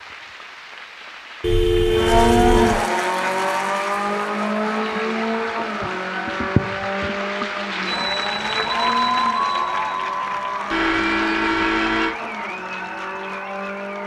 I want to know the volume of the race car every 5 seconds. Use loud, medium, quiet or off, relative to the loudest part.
loud, medium, medium.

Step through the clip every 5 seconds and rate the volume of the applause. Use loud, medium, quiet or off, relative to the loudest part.
quiet, loud, medium.